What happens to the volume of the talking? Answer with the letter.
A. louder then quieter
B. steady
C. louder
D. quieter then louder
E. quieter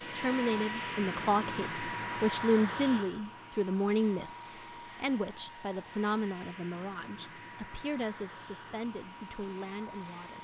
E.